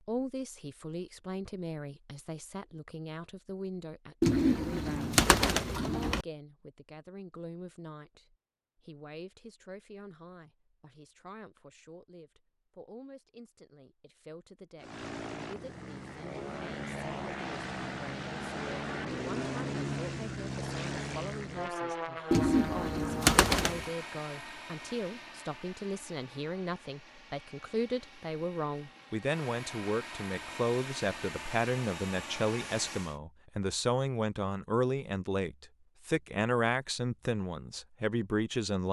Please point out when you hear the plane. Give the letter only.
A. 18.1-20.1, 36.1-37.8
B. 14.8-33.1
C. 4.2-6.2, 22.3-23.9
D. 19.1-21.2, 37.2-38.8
B.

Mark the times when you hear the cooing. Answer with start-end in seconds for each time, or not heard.
4.2-6.2, 22.3-23.9.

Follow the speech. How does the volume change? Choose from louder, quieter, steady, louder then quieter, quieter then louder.
quieter then louder.